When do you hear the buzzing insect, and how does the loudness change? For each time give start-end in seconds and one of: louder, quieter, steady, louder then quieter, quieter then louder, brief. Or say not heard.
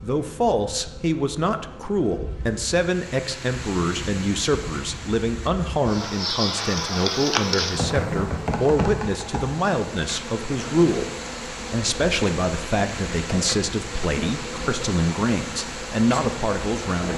0.0-17.1 louder then quieter.